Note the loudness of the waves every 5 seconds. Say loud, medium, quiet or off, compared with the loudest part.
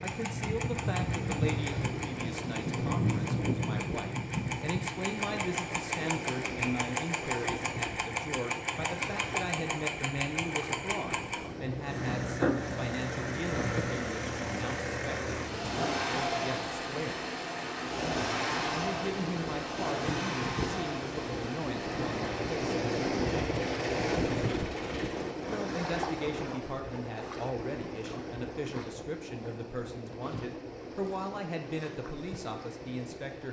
medium, medium, medium, medium, loud, medium, medium.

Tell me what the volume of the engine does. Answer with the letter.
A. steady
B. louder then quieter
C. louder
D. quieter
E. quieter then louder
D.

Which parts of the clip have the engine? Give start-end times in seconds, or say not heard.
0.0-25.4.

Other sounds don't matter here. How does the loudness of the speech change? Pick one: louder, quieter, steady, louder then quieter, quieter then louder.
steady.